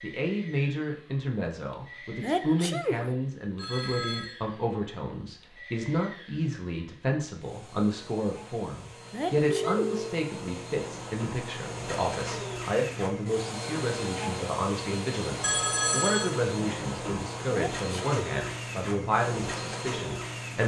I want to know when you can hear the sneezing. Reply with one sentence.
You can hear the sneezing from 2.2 to 3.1 s, from 9.1 to 10.0 s and from 17.5 to 18.1 s.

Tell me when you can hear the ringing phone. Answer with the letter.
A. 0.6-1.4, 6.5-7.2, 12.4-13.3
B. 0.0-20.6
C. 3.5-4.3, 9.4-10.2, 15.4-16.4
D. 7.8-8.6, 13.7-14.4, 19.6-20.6
C.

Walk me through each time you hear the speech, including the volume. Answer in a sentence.
The speech can be heard from 0.0 to 20.6 s, at a steady volume.